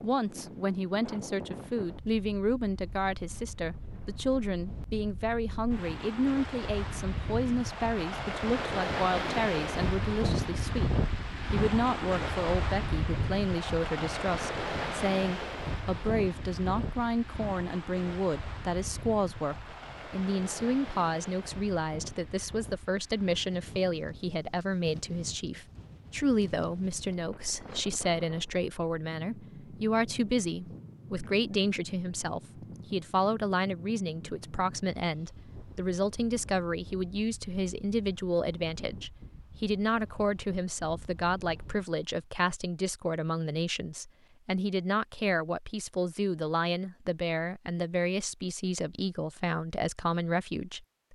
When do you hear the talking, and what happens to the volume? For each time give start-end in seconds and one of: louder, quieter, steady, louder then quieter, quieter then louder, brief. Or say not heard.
0.0-51.0 steady.